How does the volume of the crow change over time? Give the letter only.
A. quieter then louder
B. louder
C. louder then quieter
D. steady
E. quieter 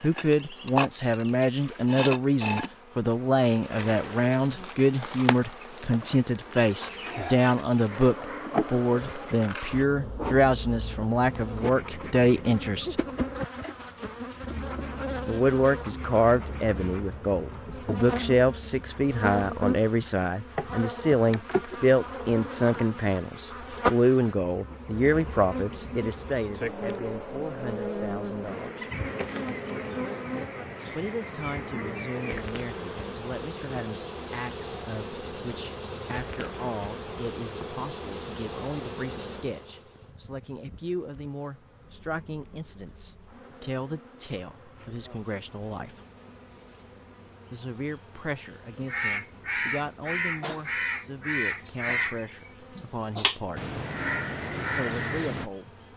D.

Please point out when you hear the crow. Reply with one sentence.
The crow can be heard from 48.8 to 55.5 s.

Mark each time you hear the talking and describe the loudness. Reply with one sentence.
The talking can be heard from 0.0 to 12.9 s, at a steady volume; from 15.2 to 28.9 s, getting quieter; from 30.9 to 46.0 s, at a steady volume; from 47.5 to 53.7 s, at a steady volume; and briefly from 54.7 to 55.7 s.